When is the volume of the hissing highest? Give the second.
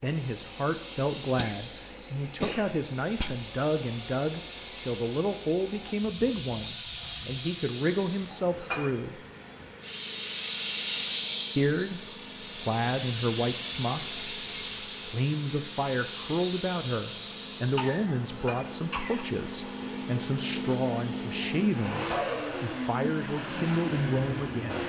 11 s.